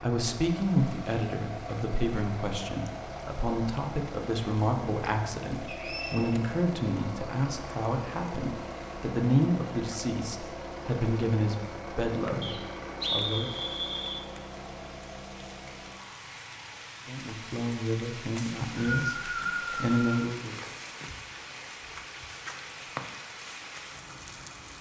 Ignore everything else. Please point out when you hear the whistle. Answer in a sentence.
You can hear the whistle from 5.7 to 6.2 s, from 12.4 to 14.2 s and from 18.4 to 20.2 s.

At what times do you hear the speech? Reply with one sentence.
The speech can be heard from 0.0 to 13.5 s and from 17.1 to 20.6 s.